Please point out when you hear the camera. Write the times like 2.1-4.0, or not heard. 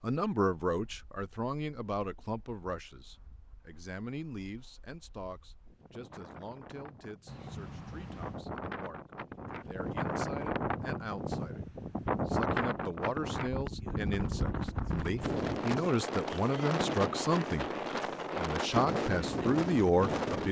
7.2-8.4.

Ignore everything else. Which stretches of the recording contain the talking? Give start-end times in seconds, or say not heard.
0.0-11.7, 12.2-17.7, 18.4-20.4.